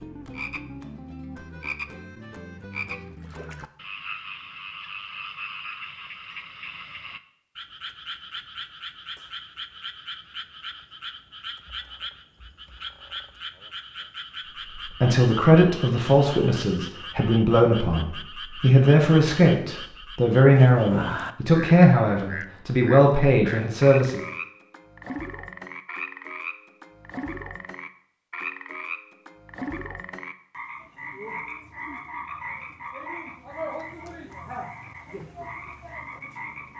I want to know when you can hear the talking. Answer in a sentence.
The talking can be heard from 14.8 to 24.2 s.